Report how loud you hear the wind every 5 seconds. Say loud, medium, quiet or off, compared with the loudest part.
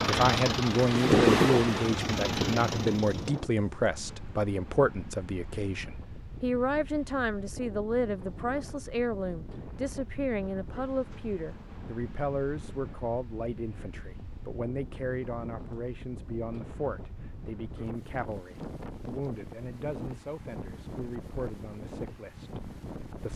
loud, quiet, quiet, quiet, quiet.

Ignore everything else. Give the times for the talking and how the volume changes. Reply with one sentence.
You can hear the talking from 0.1 to 23.3 s, getting quieter.